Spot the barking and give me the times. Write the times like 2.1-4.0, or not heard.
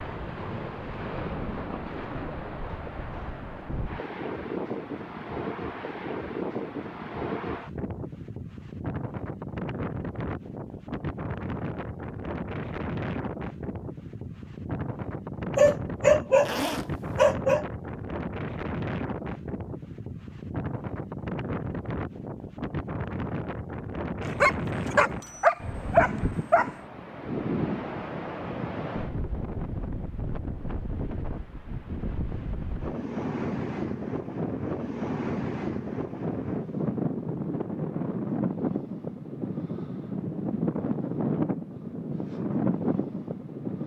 15.6-17.6, 24.2-26.7.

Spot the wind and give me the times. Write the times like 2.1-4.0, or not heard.
0.0-43.8.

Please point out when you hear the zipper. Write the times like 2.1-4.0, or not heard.
16.4-17.2.